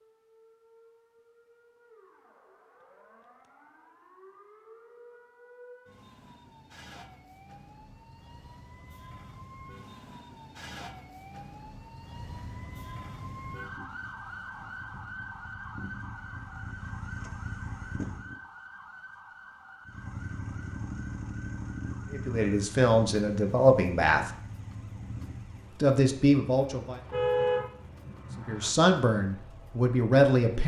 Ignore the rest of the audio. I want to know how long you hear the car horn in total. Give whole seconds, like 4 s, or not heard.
2 s.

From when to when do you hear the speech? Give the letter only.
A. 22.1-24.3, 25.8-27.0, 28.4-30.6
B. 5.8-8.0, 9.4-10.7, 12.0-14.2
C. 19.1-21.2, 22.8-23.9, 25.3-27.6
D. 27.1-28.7
A.